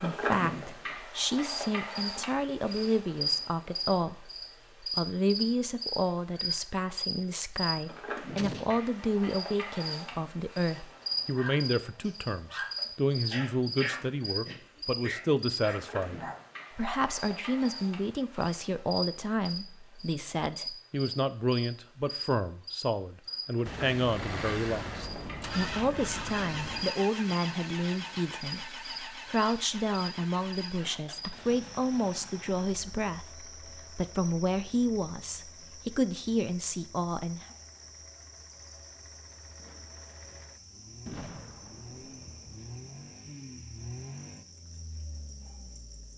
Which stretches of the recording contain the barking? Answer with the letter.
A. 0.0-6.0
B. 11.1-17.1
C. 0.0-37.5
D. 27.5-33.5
B.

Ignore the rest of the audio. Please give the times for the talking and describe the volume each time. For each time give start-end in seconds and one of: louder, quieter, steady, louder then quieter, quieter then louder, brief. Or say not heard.
0.0-37.5 steady.